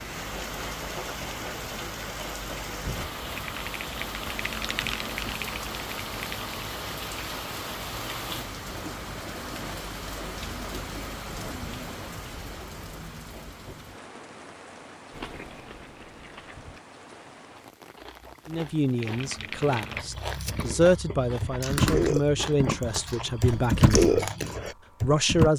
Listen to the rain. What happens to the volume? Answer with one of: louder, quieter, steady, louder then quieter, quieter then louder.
quieter.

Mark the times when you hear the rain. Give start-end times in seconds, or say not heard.
0.0-20.7.